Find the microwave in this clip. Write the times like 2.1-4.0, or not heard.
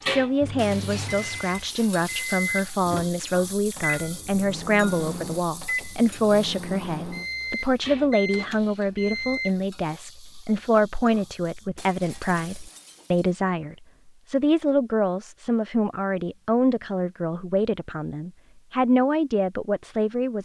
0.0-9.6.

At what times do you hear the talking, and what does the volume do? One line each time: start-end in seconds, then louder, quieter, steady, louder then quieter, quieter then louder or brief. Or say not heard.
0.0-20.3 steady.